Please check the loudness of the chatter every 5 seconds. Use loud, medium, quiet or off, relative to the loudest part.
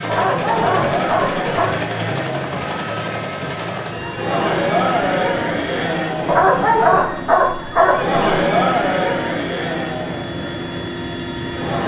loud, loud, medium.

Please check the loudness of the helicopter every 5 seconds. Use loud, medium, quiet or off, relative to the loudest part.
loud, medium, loud.